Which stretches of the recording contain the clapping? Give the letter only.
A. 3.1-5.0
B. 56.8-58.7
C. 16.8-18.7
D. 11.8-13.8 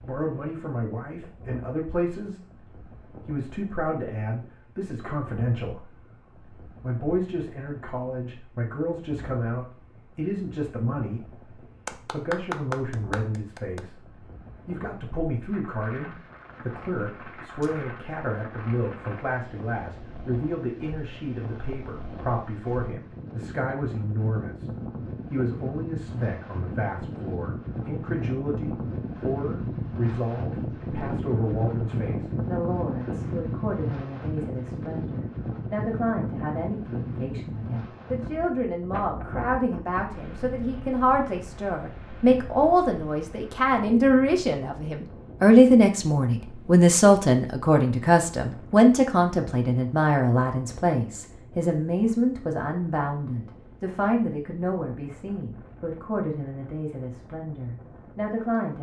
D.